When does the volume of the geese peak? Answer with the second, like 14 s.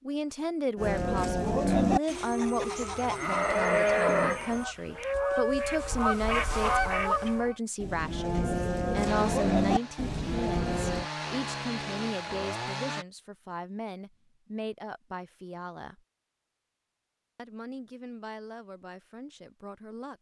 7 s.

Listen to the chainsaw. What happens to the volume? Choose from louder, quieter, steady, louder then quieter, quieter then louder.
louder.